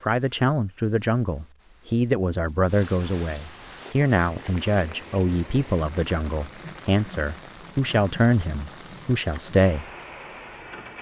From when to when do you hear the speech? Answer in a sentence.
The speech can be heard from 0.0 to 9.8 s.